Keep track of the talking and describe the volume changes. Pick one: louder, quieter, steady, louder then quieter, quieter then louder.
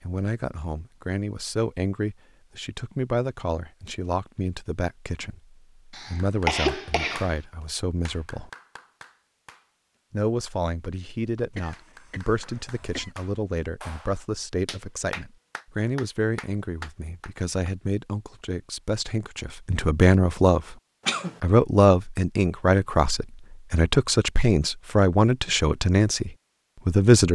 louder.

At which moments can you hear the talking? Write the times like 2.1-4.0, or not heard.
0.0-8.5, 10.1-20.8, 21.4-27.3.